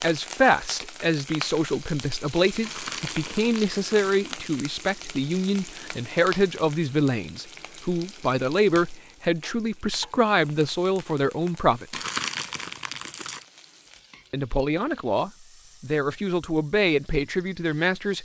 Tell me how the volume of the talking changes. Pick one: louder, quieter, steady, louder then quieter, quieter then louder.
steady.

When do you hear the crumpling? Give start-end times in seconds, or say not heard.
2.6-4.7, 11.9-13.4.